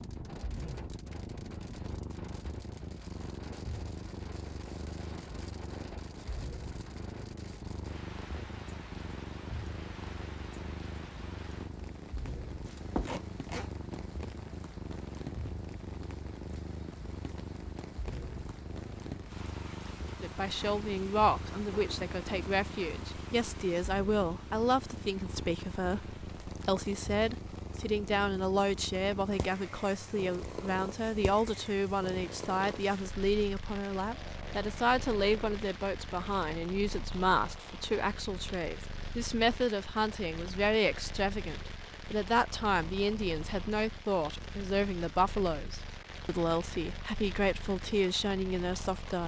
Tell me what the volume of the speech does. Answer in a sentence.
The loudness of the speech stays about the same.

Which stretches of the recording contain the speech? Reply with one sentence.
You can hear the speech from 20.2 to 49.2 s.